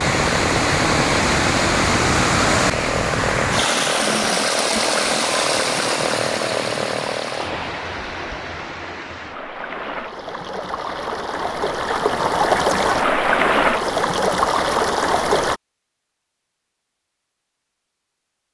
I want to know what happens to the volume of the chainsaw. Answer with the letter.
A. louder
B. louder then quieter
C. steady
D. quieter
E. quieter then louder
C.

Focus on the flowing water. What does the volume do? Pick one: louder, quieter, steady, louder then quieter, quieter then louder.
quieter then louder.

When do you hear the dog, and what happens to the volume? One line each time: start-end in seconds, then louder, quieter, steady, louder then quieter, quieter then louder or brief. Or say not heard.
not heard.